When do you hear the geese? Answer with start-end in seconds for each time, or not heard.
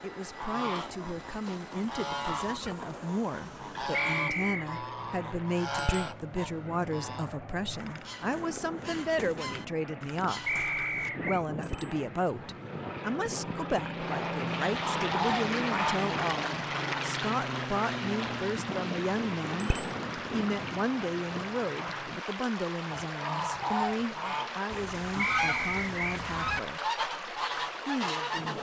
0.2-11.1, 14.8-16.1, 22.9-28.5.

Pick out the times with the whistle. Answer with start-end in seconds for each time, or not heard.
3.9-4.6, 10.4-11.4, 25.1-26.2.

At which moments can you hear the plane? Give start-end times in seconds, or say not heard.
0.0-22.2.